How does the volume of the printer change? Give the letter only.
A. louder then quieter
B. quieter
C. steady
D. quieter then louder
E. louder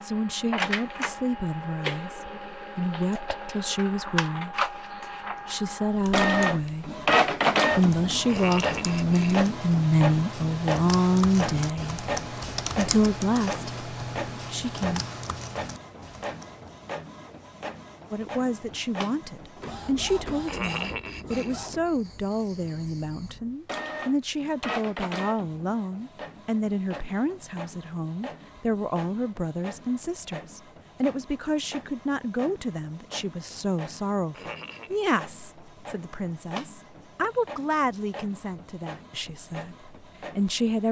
B.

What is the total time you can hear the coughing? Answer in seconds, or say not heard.
3 s.